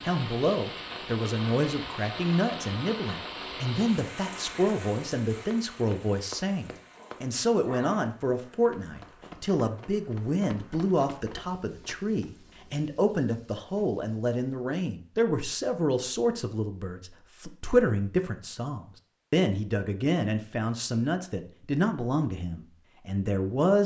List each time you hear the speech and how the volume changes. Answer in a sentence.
You can hear the speech from 0.0 to 23.8 s, at a steady volume.